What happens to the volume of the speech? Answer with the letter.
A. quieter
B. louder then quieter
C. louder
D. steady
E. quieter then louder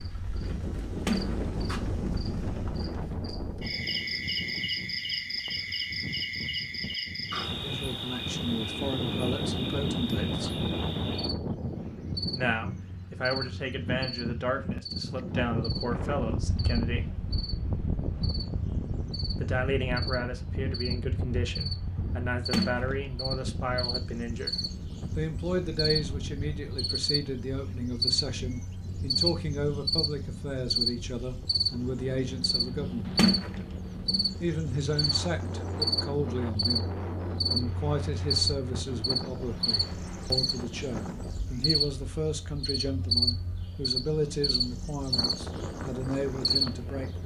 D.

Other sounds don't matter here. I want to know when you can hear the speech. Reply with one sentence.
You can hear the speech from 7.6 to 10.6 s, from 12.3 to 17.1 s, from 19.4 to 24.6 s, from 25.1 to 33.2 s and from 34.4 to 47.2 s.